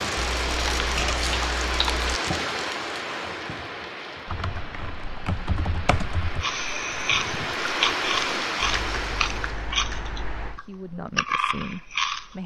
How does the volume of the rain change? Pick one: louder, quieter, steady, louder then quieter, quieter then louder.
quieter then louder.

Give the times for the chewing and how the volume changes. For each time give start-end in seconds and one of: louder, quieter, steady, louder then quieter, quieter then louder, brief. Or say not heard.
6.4-12.4 quieter then louder.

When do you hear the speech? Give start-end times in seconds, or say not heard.
10.4-12.4.